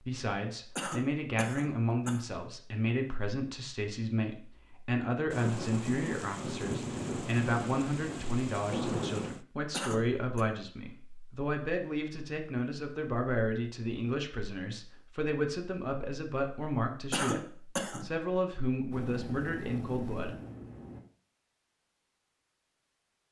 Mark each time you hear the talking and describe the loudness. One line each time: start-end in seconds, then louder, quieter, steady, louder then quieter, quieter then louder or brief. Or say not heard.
0.0-20.4 steady.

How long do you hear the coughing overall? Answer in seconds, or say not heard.
3 s.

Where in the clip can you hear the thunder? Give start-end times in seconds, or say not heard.
5.3-9.4.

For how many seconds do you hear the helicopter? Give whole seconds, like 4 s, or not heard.
2 s.